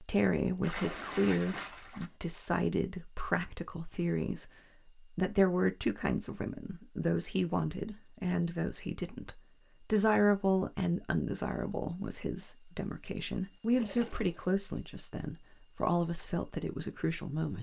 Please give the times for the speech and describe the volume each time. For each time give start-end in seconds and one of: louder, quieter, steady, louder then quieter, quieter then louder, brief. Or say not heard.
0.0-17.5 steady.